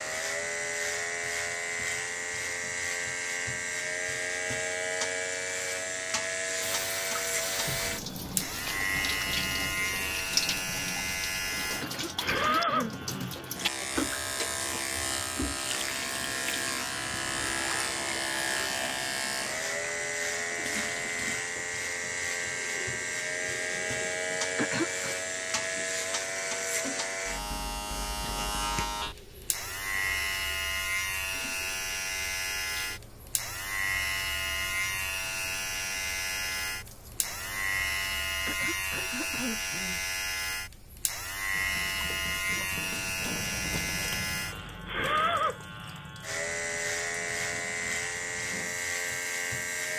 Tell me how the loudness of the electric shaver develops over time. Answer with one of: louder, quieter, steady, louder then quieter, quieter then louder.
steady.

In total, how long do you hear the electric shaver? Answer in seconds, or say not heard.
50 s.